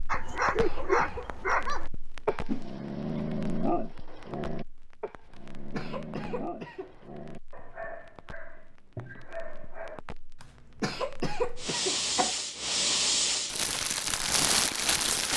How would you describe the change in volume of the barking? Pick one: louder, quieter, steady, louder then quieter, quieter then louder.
quieter.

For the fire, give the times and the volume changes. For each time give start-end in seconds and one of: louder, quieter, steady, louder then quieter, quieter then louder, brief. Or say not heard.
0.0-15.3 quieter then louder.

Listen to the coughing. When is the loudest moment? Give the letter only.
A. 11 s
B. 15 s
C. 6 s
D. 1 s
A.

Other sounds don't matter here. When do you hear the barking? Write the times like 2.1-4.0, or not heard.
0.1-10.0.